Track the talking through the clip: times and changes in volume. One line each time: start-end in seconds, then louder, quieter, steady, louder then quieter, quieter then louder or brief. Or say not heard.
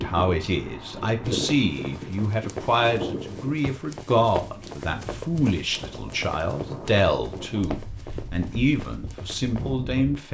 0.0-10.2 steady.